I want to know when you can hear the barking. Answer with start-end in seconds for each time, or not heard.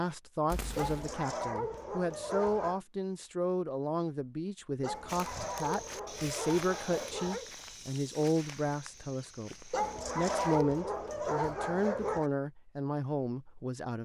0.8-2.8, 4.8-7.5, 9.7-12.3.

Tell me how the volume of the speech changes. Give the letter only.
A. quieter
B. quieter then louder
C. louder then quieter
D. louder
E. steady
E.